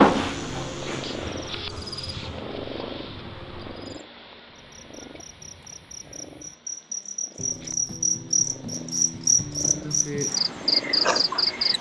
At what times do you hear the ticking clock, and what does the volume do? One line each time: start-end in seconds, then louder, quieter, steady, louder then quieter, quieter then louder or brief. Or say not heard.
not heard.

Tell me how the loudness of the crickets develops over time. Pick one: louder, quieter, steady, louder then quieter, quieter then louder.
quieter then louder.